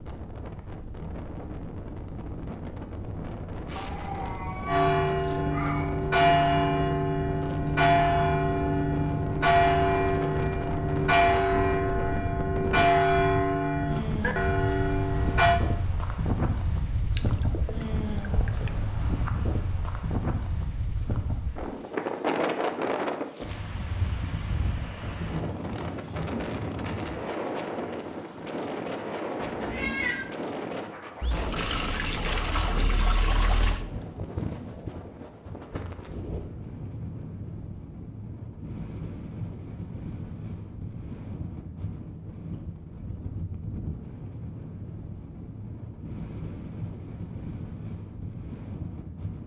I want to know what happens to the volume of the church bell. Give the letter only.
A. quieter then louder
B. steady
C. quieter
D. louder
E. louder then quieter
B.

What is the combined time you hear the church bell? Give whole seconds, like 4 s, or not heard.
11 s.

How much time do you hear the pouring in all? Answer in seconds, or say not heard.
4 s.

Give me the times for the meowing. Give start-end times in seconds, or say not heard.
3.8-6.0, 29.4-30.3.